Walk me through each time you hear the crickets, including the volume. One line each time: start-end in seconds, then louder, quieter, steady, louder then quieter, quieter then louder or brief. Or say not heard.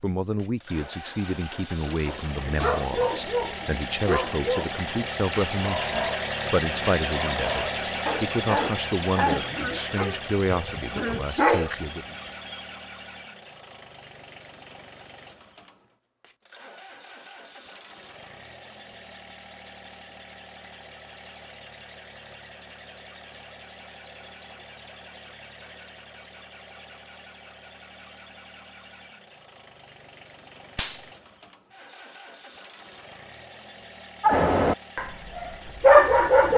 not heard.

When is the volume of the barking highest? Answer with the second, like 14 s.
36 s.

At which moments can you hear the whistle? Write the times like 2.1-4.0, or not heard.
not heard.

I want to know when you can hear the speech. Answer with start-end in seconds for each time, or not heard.
0.0-12.2.